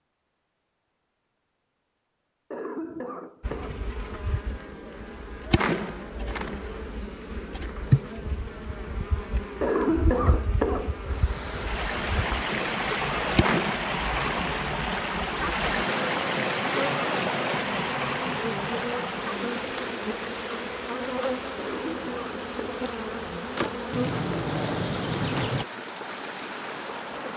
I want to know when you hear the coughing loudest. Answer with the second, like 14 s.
10 s.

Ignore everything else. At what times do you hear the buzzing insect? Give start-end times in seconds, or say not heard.
3.4-25.6.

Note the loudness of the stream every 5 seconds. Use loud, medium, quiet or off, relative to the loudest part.
off, off, loud, loud, medium, medium.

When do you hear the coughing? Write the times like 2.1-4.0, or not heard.
2.5-3.8, 9.6-11.2, 21.6-22.9.